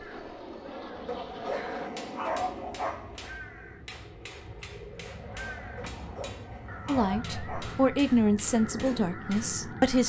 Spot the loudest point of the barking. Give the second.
2 s.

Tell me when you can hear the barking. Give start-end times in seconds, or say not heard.
1.1-3.1, 5.8-7.8.